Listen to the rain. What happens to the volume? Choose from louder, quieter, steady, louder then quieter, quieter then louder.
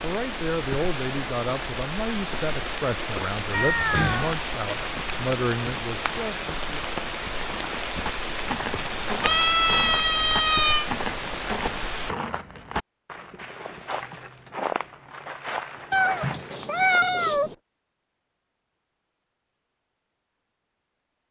steady.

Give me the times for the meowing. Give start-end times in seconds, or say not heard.
3.5-4.3, 9.2-10.9, 15.9-17.6.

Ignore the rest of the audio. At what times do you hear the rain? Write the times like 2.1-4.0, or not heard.
0.0-12.2.